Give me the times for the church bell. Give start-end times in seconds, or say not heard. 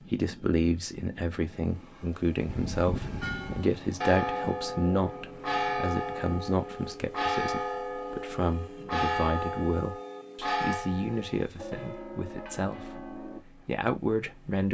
2.5-13.4.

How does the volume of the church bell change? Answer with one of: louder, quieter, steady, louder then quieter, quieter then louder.
quieter.